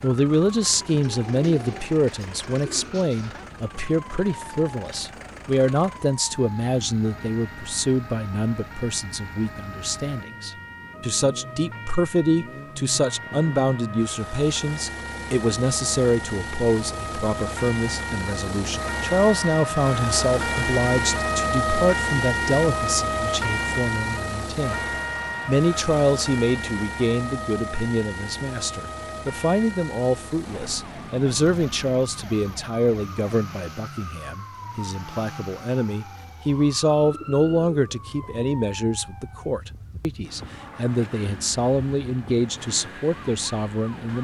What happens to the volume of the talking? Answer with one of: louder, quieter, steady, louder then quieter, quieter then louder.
steady.